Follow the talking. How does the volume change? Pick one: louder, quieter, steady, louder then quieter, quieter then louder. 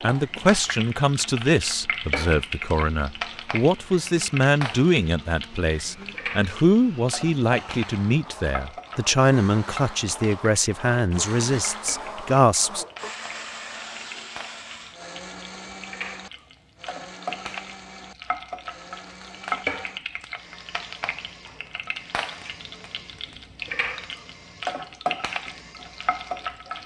steady.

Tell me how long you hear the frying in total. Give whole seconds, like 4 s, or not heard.
27 s.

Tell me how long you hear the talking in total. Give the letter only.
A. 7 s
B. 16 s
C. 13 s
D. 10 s
C.